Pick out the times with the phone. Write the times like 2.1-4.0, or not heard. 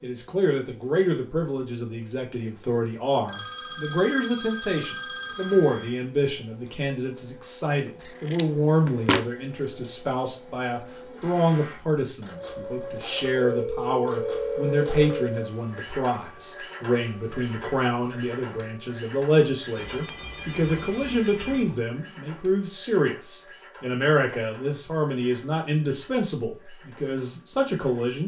3.2-6.0, 13.3-15.3, 19.8-21.8.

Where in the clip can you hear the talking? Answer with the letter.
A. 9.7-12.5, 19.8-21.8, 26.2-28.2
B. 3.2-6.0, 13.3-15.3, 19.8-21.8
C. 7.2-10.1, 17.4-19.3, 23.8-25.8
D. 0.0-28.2
D.